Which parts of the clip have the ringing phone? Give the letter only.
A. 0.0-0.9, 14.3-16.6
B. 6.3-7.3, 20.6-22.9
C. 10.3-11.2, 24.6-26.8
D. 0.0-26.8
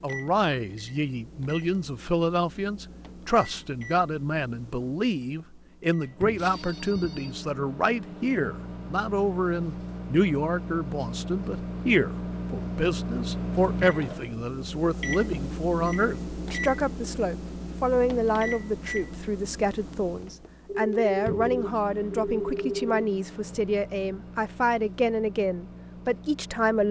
B.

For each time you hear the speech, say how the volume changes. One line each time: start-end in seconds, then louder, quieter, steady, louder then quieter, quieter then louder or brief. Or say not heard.
0.0-26.8 steady.